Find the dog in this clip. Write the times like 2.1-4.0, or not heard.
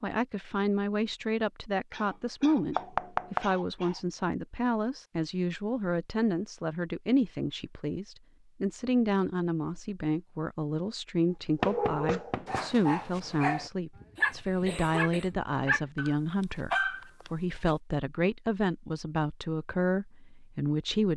11.6-17.7.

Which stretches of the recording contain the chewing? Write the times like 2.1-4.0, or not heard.
not heard.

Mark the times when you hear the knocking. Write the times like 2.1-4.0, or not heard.
2.8-3.5, 11.6-12.7.